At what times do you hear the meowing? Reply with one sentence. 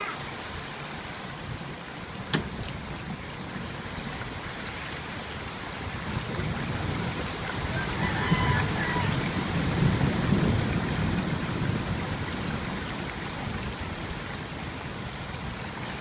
You can't hear the meowing here.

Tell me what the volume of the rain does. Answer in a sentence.
The volume of the rain goes up, then down.